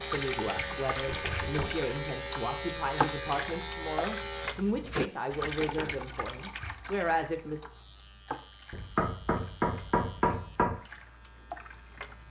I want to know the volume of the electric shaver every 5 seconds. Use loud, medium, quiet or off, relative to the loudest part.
loud, quiet, quiet.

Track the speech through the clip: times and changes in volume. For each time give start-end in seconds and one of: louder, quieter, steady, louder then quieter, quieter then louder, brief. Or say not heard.
0.0-7.6 steady.